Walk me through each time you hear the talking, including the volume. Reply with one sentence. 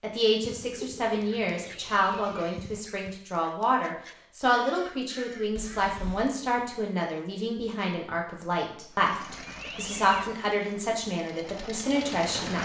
You can hear the talking from 0.0 to 12.5 s, at a steady volume.